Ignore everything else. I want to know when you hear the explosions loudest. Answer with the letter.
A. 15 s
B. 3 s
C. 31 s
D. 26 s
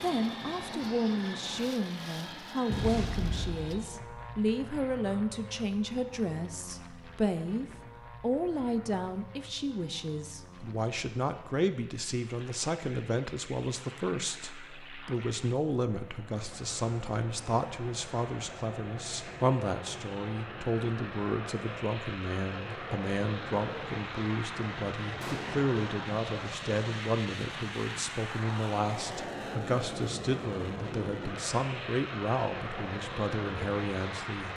B.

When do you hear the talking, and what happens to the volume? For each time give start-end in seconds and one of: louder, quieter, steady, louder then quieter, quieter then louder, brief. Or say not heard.
0.0-34.5 steady.